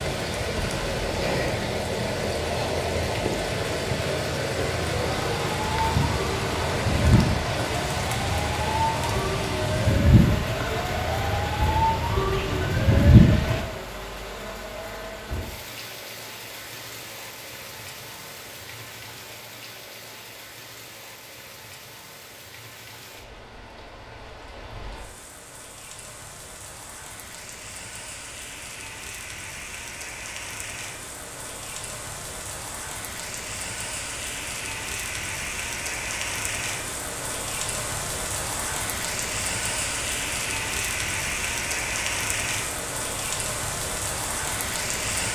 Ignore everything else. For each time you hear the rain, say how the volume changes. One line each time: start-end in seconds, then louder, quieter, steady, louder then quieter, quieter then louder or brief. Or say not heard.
0.0-45.2 quieter then louder.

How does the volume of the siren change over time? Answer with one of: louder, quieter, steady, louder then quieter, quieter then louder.
louder.